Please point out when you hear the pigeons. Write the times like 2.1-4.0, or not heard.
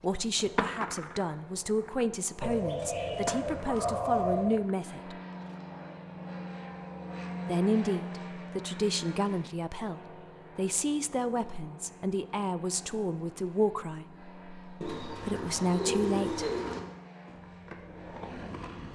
2.4-4.5, 14.8-16.8.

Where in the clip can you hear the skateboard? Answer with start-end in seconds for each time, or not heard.
0.1-5.6, 17.2-18.9.